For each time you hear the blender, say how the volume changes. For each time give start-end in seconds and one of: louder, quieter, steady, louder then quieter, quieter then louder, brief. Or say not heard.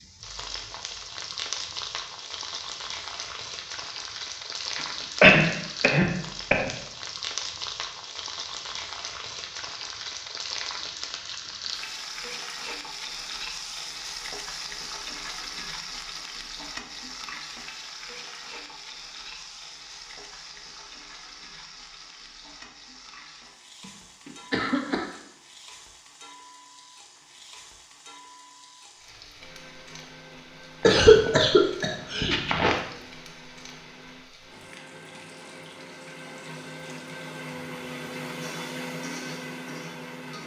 29.4-40.4 louder.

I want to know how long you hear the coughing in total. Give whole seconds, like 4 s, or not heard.
5 s.